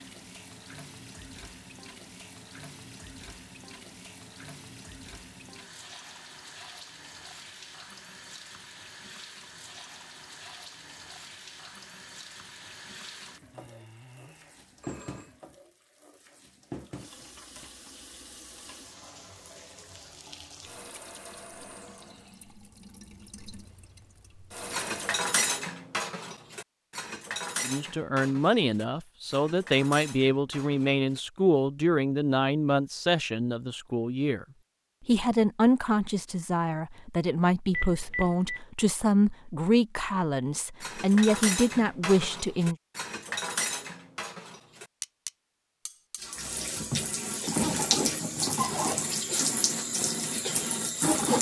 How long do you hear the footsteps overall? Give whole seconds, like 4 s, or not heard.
not heard.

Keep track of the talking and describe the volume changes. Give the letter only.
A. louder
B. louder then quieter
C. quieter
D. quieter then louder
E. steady
E.